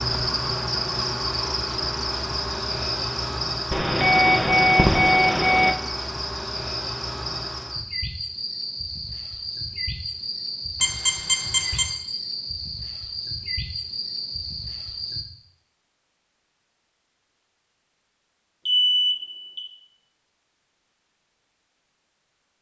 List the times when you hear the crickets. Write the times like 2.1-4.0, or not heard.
0.0-15.2.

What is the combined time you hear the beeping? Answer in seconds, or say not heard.
4 s.